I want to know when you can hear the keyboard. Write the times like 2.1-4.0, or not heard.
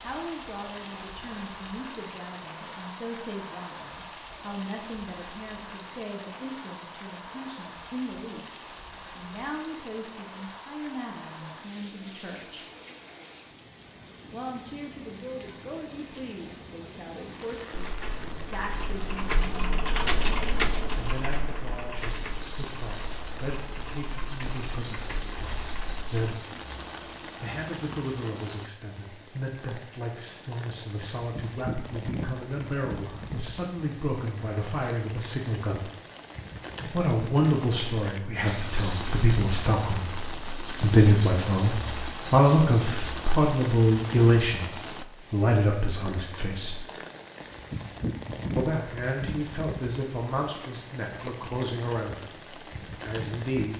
17.7-26.2.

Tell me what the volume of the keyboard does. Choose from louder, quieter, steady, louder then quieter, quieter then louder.
louder then quieter.